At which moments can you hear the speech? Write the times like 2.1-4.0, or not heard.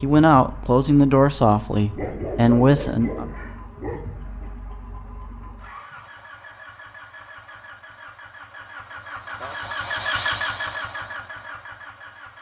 0.0-3.2.